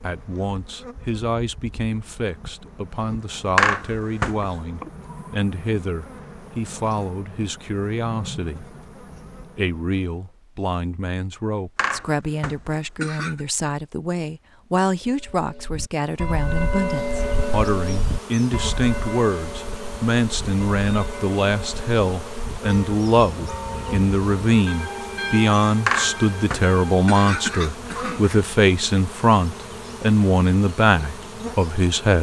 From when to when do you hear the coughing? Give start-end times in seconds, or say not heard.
3.5-4.5, 11.8-13.4, 25.9-28.4.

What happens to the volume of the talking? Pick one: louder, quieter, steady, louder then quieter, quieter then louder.
louder.